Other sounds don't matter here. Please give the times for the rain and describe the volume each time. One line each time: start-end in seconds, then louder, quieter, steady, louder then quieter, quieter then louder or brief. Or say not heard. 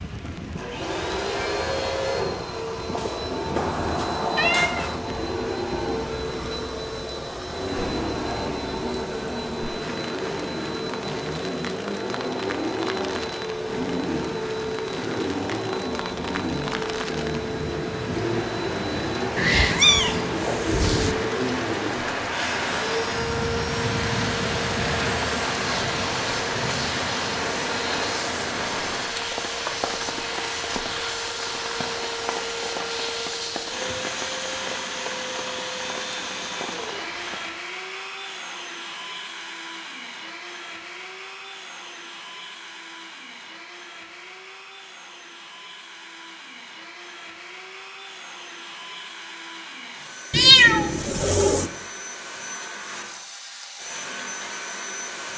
0.0-37.6 louder then quieter.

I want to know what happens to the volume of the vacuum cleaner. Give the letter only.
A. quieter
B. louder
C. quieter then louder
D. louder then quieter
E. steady
A.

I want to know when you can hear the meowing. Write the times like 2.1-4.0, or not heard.
3.0-5.0, 19.4-21.1, 50.3-51.7.